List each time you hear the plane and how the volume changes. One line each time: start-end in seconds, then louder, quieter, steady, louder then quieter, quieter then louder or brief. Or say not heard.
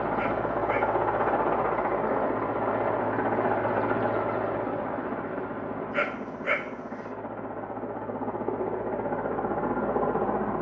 0.0-10.5 quieter then louder.